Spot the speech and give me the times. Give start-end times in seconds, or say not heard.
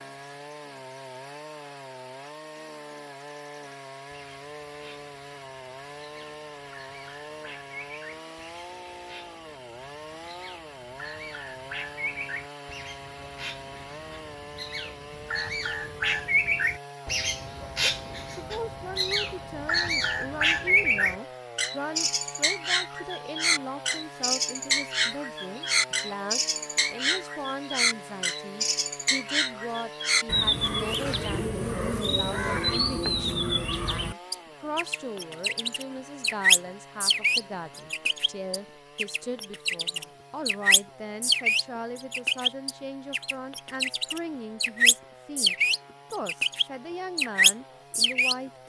17.8-48.5.